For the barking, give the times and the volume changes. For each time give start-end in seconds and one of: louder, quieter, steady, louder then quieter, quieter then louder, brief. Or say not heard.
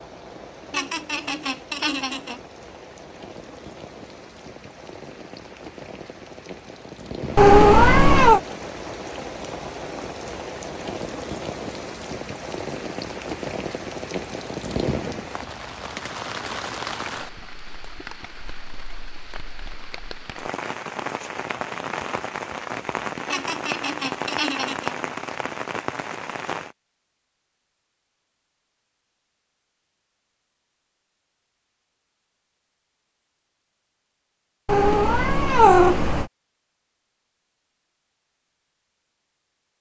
not heard.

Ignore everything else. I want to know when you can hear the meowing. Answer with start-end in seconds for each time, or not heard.
7.3-8.4, 34.6-36.2.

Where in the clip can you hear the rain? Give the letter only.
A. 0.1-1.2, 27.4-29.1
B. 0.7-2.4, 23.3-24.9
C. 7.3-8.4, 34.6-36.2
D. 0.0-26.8
D.